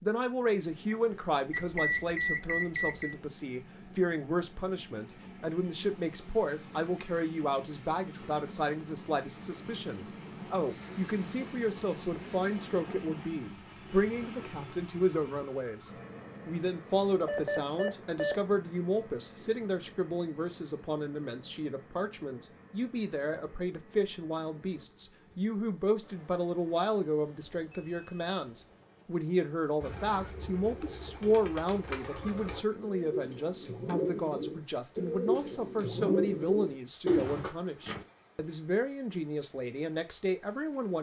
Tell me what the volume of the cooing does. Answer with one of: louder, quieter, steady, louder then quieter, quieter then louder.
louder.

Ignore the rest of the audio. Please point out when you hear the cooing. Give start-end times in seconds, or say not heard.
29.8-38.0.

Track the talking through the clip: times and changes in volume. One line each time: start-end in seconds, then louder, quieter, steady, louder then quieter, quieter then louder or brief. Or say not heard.
0.0-40.9 steady.